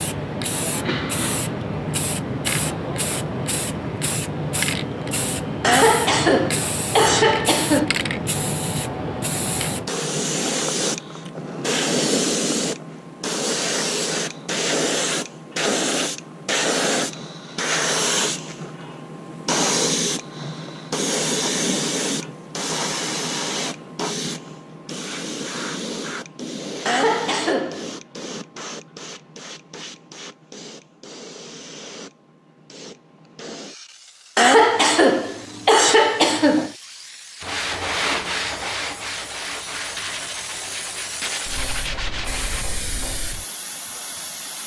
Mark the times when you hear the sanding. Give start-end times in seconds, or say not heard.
37.4-42.6.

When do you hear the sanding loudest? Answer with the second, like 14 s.
38 s.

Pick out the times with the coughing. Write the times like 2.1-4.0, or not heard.
5.6-7.9, 26.9-27.9, 34.4-36.7.